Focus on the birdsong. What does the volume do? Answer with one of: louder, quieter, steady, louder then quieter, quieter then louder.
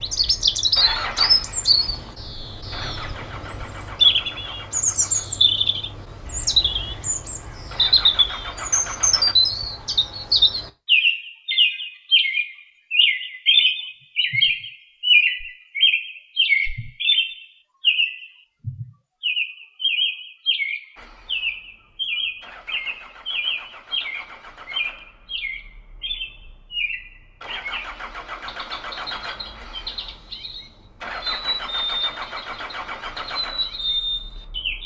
quieter.